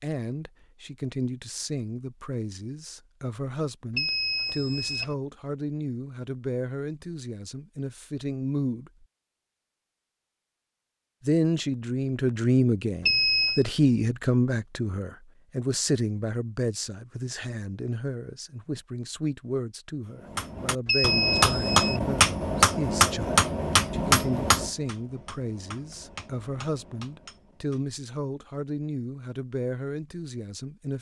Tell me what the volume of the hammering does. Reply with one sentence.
The loudness of the hammering goes down.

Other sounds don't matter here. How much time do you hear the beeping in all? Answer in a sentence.
The beeping can be heard for 3 seconds in total.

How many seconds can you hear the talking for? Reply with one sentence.
The talking can be heard for 29 seconds in total.